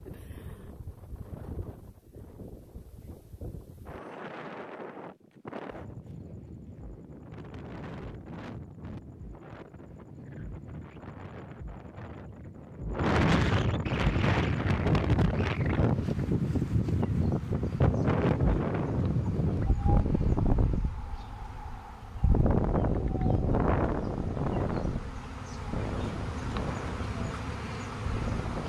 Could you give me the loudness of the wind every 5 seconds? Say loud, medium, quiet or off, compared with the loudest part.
quiet, quiet, loud, loud, loud, medium.